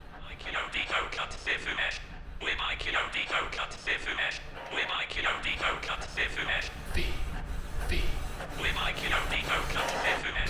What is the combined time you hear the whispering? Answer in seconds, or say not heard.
10 s.